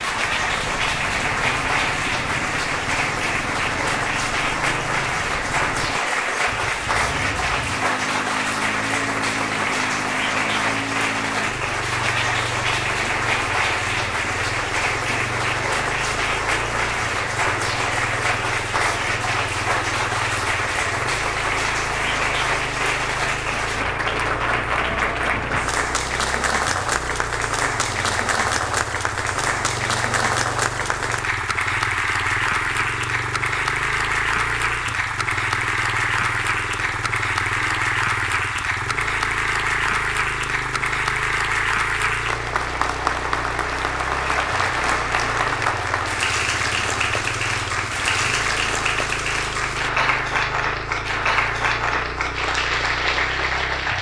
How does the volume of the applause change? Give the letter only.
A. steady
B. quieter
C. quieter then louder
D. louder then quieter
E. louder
A.